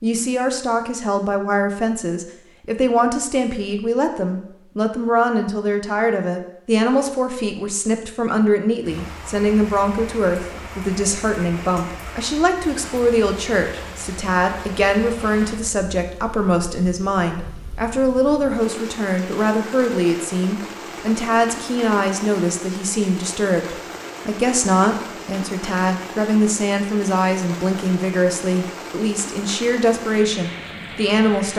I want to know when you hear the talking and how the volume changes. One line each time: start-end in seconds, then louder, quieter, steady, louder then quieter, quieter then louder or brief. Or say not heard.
0.0-31.5 steady.